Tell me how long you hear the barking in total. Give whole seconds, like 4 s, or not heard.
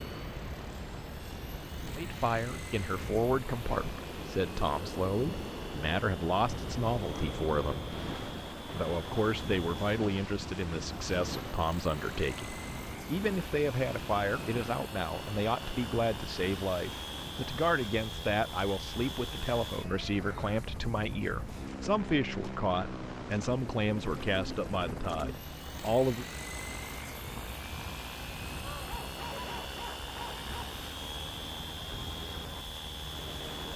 2 s.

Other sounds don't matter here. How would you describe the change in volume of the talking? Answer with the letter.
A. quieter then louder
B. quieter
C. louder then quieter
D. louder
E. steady
E.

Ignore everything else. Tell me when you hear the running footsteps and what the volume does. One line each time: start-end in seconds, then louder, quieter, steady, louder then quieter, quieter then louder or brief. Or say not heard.
not heard.